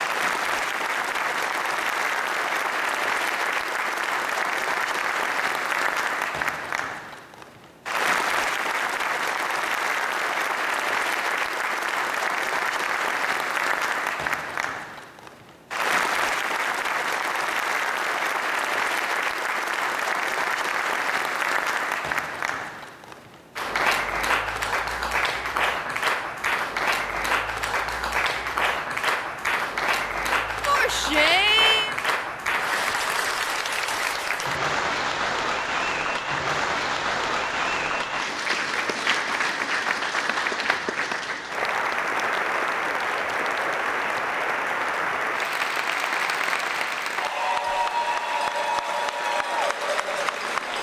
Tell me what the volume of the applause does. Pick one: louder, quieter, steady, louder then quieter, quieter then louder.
steady.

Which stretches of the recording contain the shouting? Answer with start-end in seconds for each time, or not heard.
30.6-31.9.